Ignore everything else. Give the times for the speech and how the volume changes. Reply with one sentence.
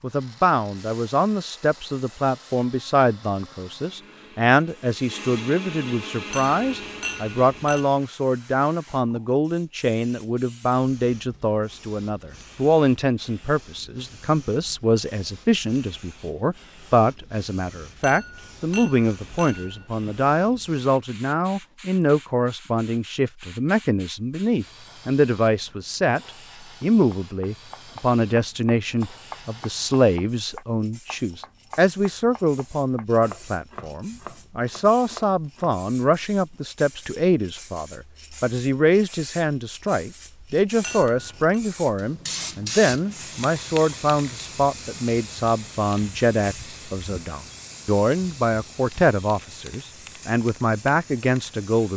You can hear the speech from 0.0 to 51.9 s, at a steady volume.